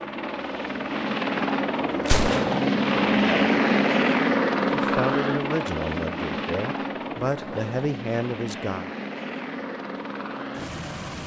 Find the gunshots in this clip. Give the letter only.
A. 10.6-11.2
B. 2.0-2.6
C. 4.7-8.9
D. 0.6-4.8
B.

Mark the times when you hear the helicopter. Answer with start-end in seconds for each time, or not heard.
0.0-11.2.